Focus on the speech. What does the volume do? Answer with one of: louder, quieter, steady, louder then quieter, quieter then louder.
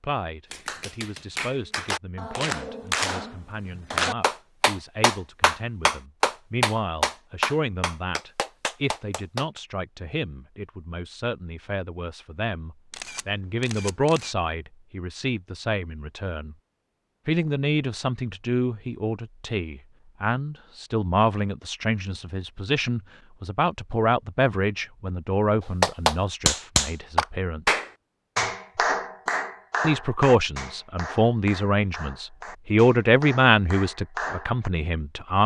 louder.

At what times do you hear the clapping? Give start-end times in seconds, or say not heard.
0.5-9.4, 25.8-34.7.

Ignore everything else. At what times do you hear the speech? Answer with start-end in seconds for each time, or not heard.
0.0-16.6, 17.2-27.6, 29.8-35.4.